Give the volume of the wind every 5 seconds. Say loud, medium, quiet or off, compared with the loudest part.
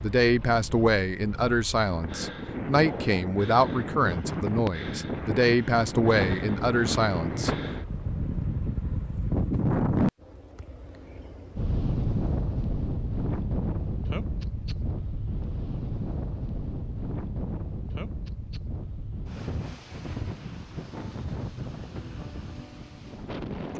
medium, loud, loud, medium, medium.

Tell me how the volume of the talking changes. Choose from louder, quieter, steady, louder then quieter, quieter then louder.
steady.